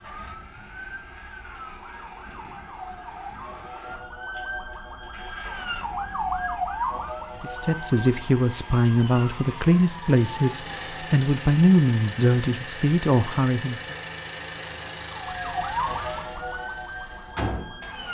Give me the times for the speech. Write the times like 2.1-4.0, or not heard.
7.4-13.9.